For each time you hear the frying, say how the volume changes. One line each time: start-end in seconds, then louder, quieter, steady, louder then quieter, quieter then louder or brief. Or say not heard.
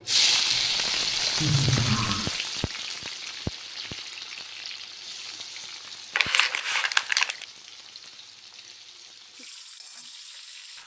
0.0-10.8 quieter.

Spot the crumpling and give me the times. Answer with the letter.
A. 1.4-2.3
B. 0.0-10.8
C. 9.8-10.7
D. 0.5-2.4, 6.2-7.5
D.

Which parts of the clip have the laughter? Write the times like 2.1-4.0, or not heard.
1.4-2.3.